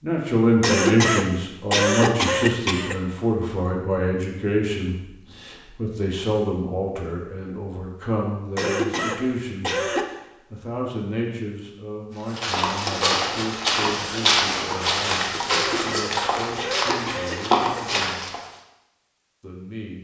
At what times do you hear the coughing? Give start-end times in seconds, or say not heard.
0.6-3.0, 8.6-10.1, 15.4-17.9.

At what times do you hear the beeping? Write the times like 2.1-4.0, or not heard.
not heard.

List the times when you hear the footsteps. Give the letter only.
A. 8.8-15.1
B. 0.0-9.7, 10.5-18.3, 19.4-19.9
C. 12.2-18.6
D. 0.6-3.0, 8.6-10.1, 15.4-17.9
C.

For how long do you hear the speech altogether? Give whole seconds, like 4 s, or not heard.
18 s.